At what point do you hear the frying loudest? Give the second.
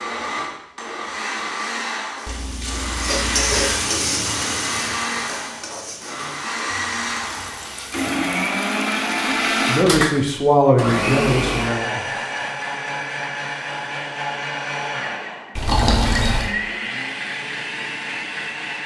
4 s.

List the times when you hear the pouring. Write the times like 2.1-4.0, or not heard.
2.2-3.8, 6.7-8.1, 15.6-16.6.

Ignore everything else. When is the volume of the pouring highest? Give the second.
16 s.